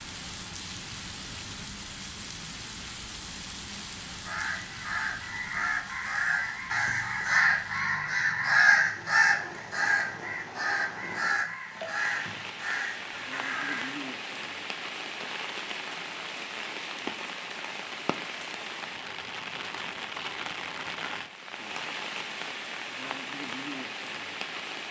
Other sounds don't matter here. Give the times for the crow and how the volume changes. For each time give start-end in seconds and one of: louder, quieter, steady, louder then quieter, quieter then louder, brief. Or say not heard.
4.0-14.0 louder then quieter.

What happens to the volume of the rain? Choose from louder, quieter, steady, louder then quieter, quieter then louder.
quieter then louder.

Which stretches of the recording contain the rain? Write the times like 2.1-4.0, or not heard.
0.0-24.8.